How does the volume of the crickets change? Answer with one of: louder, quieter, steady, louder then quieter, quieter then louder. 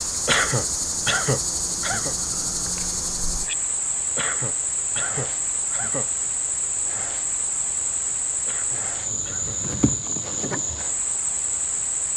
steady.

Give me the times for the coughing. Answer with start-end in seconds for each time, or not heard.
0.2-2.1, 4.2-6.1, 8.4-9.6.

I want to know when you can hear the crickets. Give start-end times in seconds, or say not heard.
0.0-12.1.